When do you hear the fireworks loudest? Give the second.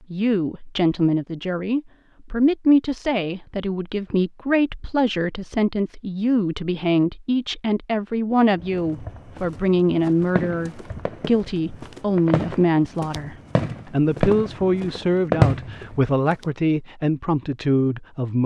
15 s.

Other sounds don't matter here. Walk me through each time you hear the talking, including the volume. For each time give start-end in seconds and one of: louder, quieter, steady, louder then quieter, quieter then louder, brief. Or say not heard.
0.1-18.4 steady.